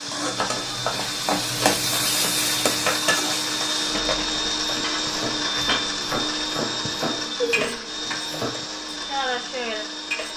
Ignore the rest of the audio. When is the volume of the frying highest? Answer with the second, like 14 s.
2 s.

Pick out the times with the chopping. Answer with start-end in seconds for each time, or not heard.
0.2-8.6.